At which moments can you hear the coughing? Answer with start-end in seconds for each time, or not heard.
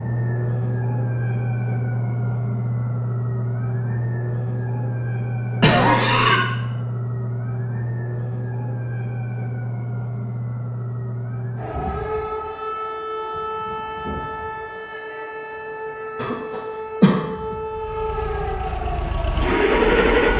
5.6-6.4, 16.1-17.6.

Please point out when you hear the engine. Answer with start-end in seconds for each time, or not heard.
17.7-20.3.